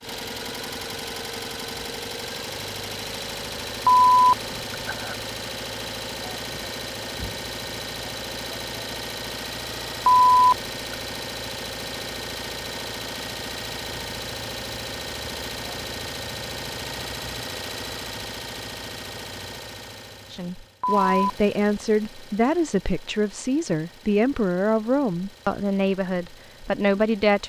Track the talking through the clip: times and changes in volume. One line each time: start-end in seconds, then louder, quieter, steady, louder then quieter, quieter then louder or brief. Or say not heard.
20.3-27.4 steady.